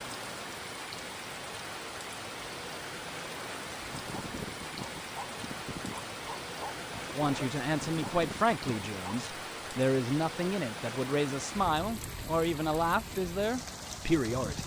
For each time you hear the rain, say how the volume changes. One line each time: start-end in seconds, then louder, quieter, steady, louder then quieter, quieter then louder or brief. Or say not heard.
0.0-14.6 steady.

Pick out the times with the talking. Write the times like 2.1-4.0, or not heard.
7.2-14.6.